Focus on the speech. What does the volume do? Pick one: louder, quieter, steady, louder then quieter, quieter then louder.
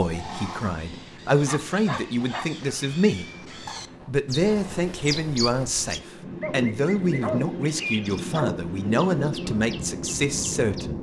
steady.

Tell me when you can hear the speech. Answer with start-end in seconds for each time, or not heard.
0.0-3.3, 4.0-10.9.